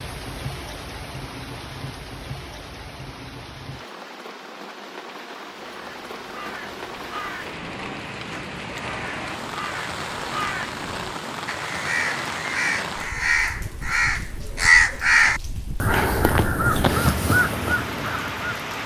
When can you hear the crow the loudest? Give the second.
15 s.